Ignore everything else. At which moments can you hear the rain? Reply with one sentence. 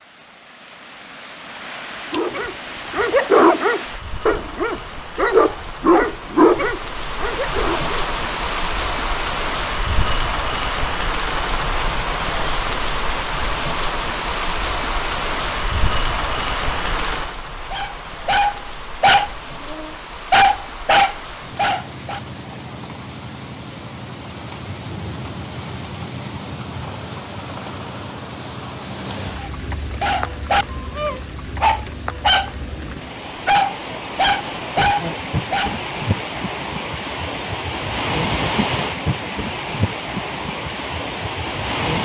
You can hear the rain from 0.0 to 41.9 s.